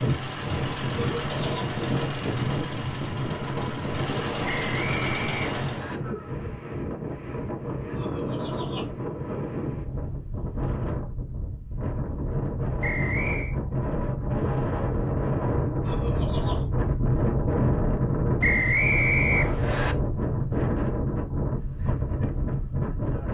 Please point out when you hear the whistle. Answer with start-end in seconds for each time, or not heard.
4.5-6.0, 12.8-13.6, 18.4-19.9.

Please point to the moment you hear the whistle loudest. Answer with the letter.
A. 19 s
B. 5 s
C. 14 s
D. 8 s
A.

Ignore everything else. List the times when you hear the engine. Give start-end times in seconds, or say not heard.
0.0-5.8.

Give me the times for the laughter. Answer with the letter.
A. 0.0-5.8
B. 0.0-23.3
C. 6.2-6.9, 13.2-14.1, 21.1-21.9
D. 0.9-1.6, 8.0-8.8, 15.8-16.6
D.